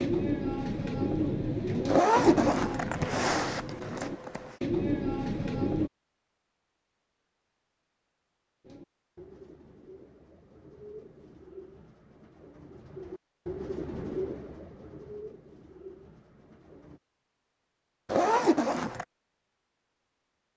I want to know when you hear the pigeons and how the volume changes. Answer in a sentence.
You can hear the pigeons from 0.0 to 5.9 s, getting quieter then louder; and from 8.6 to 17.0 s, getting louder then quieter.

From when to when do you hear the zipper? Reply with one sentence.
The zipper can be heard from 1.9 to 4.5 s and from 18.1 to 19.1 s.